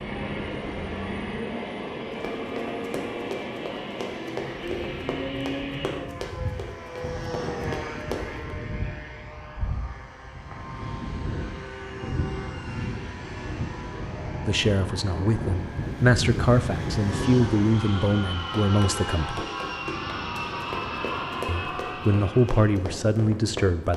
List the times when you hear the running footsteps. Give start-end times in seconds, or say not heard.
2.2-8.4, 18.6-23.9.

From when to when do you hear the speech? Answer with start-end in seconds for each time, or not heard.
14.4-19.4, 21.4-23.9.